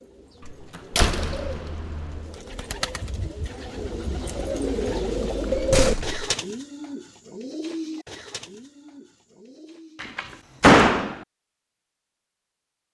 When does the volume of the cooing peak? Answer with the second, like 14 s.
6 s.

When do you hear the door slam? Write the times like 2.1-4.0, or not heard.
0.5-2.3, 5.5-6.2, 10.0-11.2.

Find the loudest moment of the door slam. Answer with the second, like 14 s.
11 s.